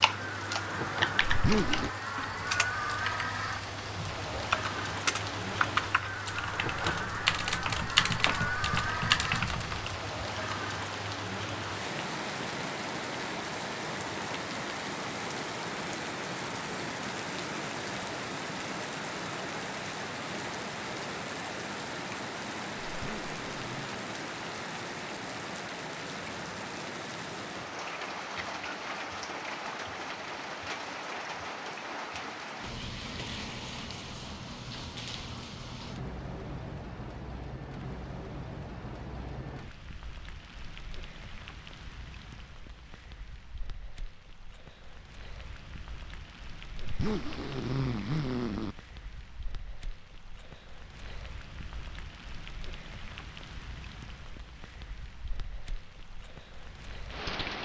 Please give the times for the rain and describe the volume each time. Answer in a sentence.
The rain can be heard from 0.0 to 57.6 s, getting quieter.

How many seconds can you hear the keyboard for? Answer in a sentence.
You can hear the keyboard for 10 seconds altogether.